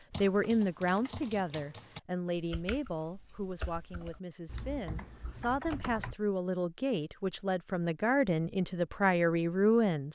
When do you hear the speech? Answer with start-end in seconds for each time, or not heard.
0.1-10.1.